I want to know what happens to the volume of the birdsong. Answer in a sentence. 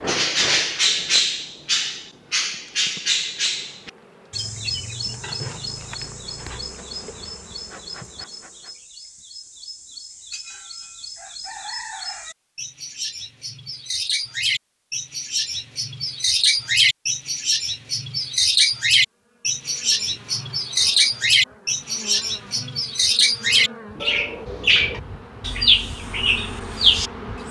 The volume of the birdsong goes down, then up.